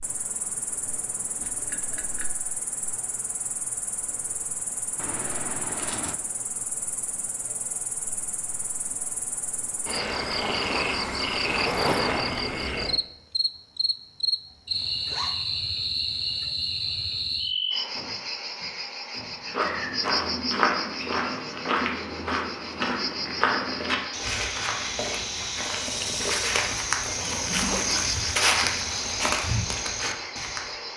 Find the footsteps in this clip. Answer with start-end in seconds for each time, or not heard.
19.4-30.8.